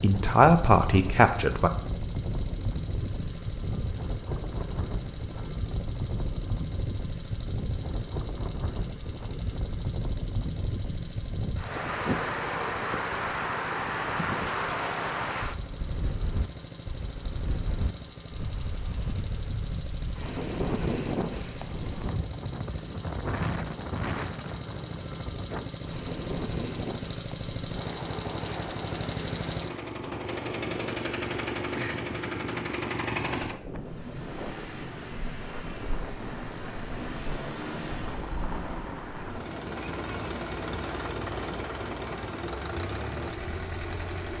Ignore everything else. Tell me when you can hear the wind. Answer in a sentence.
The wind can be heard from 0.0 to 44.3 s.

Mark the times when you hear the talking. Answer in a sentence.
You can hear the talking from 0.0 to 1.7 s.